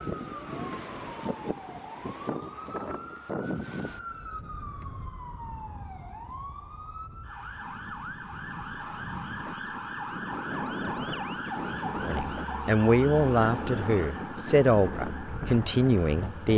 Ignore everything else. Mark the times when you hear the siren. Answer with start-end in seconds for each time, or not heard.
0.0-16.5.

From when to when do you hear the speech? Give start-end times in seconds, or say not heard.
12.1-16.5.